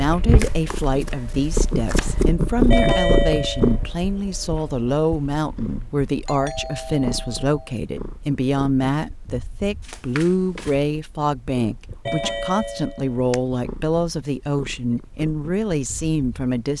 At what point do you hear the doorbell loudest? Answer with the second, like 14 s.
3 s.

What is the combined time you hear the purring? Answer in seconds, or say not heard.
17 s.